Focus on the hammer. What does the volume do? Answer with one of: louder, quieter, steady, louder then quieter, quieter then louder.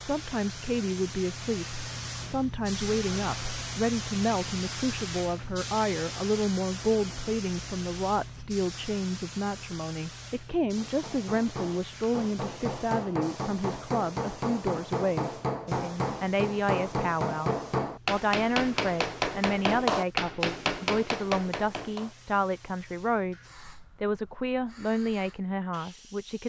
louder.